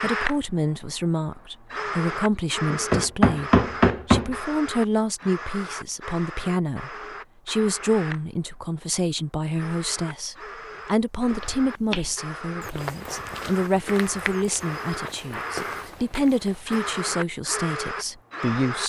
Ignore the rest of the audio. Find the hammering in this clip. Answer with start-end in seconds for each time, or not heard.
2.7-4.3.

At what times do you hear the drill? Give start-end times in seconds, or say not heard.
0.0-18.8.